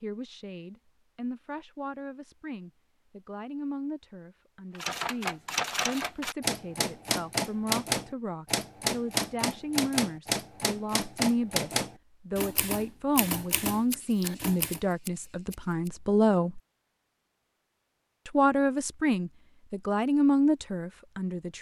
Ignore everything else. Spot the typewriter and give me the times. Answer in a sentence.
You can hear the typewriter from 4.8 to 14.8 s.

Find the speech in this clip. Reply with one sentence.
The speech can be heard from 0.0 to 16.6 s and from 18.2 to 21.5 s.